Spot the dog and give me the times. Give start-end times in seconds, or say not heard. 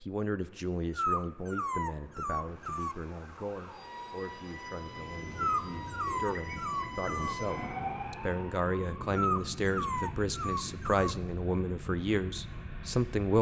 0.9-3.0, 5.3-7.3, 9.2-11.2.